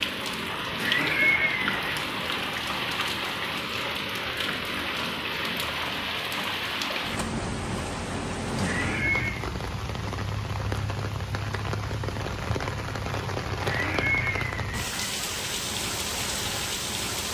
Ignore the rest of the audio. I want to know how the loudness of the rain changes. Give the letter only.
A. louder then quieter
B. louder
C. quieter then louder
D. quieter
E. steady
E.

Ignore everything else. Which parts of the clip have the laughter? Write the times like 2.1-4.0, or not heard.
0.8-1.8, 8.6-9.4, 13.6-14.8.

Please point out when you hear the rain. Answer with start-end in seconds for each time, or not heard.
0.0-17.2.